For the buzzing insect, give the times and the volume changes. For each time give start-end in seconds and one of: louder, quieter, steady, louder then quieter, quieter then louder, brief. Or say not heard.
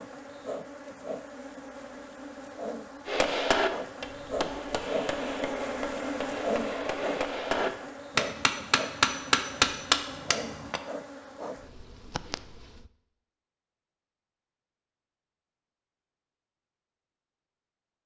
0.0-12.9 louder then quieter.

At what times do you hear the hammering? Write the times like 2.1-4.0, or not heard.
3.0-10.8.